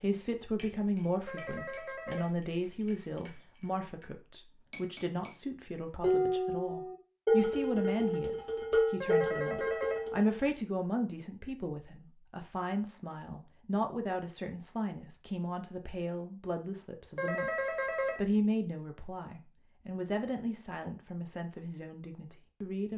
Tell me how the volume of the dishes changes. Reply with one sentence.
The volume of the dishes goes up.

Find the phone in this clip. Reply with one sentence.
You can hear the phone from 1.2 to 2.4 s, from 9.0 to 10.1 s and from 17.1 to 18.2 s.